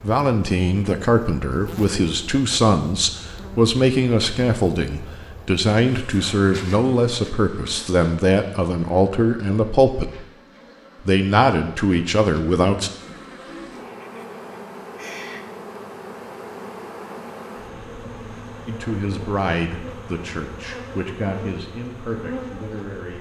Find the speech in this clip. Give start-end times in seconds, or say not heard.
0.0-10.2, 11.0-12.9, 18.6-23.1.